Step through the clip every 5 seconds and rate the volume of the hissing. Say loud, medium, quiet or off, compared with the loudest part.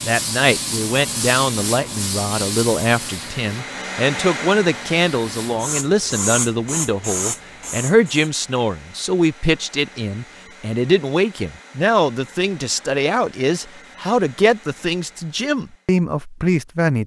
loud, loud, off, off.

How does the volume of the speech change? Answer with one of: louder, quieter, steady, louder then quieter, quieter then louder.
steady.